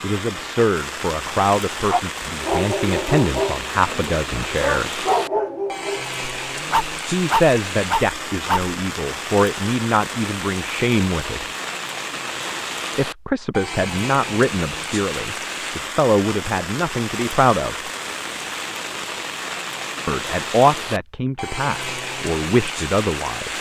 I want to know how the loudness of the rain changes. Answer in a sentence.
The loudness of the rain stays about the same.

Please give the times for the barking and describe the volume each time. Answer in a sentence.
You can hear the barking from 1.8 to 8.8 s, getting quieter then louder.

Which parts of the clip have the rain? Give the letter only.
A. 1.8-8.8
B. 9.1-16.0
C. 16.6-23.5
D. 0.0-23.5
D.